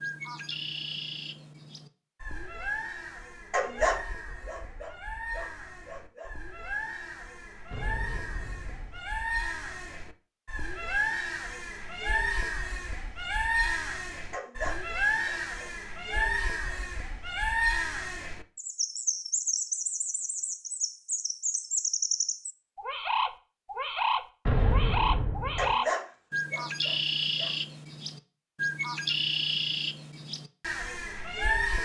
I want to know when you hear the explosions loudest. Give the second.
25 s.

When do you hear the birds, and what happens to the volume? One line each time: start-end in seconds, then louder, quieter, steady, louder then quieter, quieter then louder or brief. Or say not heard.
0.0-31.8 louder.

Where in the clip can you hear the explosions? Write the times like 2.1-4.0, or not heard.
7.7-9.0, 24.4-25.8.